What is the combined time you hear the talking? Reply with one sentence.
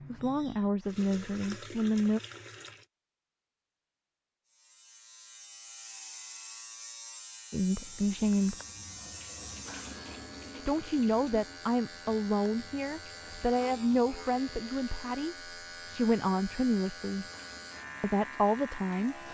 The talking can be heard for 11 seconds in total.